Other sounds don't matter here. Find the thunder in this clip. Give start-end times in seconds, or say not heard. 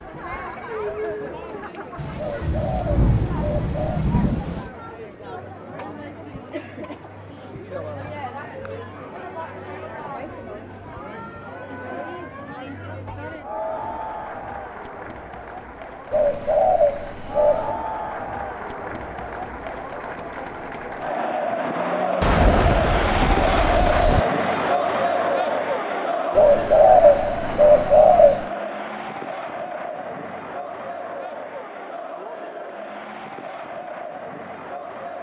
1.9-4.7, 22.2-24.2.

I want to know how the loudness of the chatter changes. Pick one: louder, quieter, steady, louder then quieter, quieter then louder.
louder then quieter.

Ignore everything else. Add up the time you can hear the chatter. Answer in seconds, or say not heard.
35 s.